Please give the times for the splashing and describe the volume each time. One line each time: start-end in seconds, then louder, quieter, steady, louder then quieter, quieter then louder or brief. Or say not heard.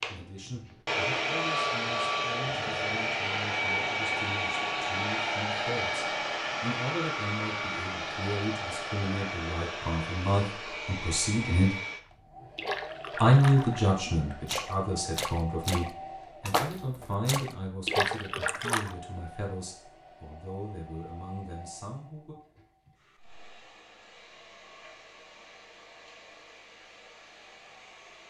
12.6-18.9 louder.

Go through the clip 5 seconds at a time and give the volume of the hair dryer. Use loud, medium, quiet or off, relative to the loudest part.
loud, loud, medium, quiet, quiet, quiet.